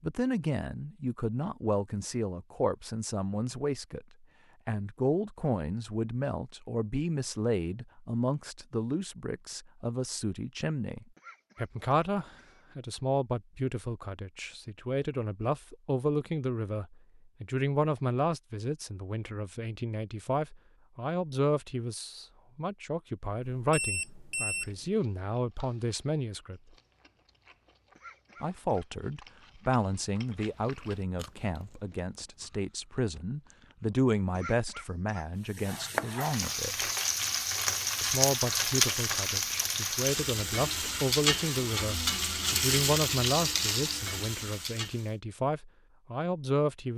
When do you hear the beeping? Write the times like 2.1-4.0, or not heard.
23.6-24.9.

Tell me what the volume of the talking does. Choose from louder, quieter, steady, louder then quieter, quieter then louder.
steady.